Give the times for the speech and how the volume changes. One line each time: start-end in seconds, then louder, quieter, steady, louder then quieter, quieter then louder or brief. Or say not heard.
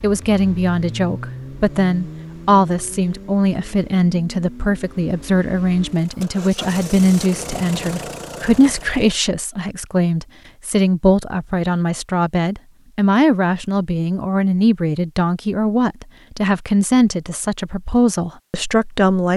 0.0-19.3 steady.